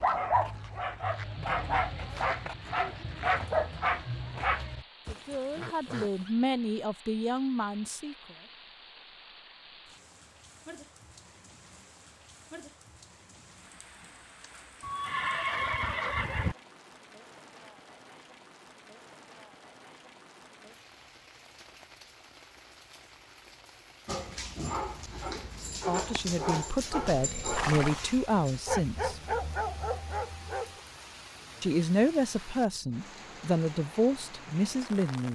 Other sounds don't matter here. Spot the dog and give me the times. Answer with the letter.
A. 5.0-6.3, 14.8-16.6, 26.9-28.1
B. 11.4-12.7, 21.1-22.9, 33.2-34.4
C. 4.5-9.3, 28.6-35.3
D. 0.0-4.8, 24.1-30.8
D.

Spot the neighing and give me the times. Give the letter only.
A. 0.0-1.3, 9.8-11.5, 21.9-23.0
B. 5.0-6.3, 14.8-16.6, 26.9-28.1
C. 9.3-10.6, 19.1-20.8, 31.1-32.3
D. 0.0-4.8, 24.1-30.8
B.